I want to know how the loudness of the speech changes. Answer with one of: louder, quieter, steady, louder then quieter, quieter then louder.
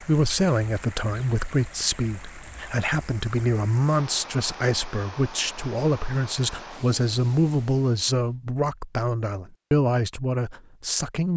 steady.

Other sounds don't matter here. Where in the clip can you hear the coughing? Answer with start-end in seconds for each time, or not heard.
not heard.